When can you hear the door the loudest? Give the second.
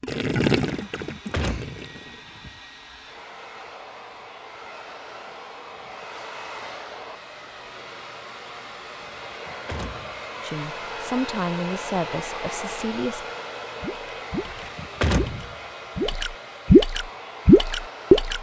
15 s.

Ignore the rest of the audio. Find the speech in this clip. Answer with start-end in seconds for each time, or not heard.
10.4-13.3.